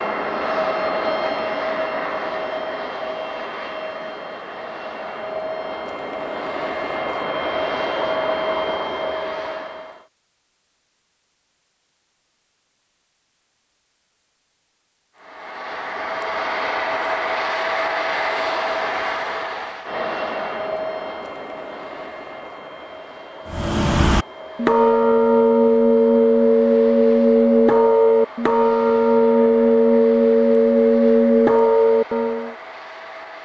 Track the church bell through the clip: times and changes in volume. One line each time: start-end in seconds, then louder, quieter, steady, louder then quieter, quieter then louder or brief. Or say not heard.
23.4-32.5 steady.